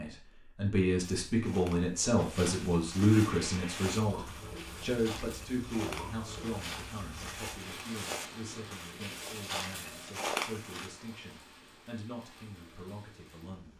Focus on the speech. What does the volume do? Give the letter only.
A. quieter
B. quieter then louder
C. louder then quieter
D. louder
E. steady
A.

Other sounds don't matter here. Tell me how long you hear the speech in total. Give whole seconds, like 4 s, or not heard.
14 s.